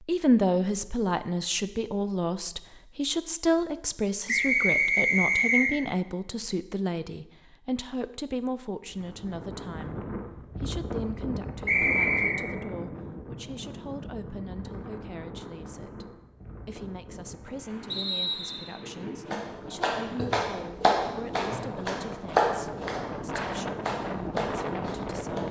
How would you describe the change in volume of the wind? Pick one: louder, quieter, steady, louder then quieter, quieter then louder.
quieter then louder.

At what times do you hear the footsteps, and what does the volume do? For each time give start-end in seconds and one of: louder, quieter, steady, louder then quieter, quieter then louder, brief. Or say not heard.
not heard.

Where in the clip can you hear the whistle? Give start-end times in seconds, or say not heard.
4.2-5.7, 11.7-12.4, 17.9-18.8.